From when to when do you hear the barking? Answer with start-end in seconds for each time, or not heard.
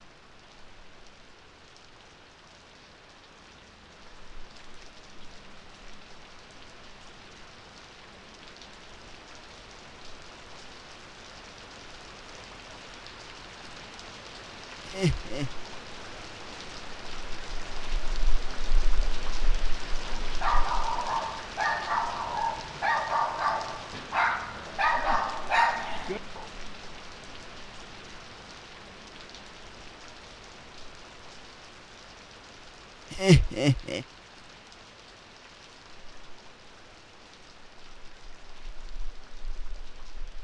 20.0-26.4.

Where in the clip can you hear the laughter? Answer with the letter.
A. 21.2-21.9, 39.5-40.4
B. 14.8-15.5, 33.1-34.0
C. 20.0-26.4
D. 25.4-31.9
B.